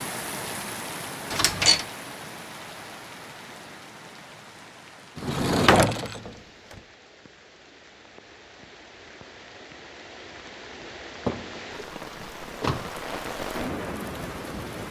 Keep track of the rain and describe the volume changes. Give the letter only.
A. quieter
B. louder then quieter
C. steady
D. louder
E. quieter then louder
E.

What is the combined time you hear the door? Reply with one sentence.
The door can be heard for 3 seconds in total.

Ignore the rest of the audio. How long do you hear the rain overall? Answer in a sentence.
The rain can be heard for 15 seconds in total.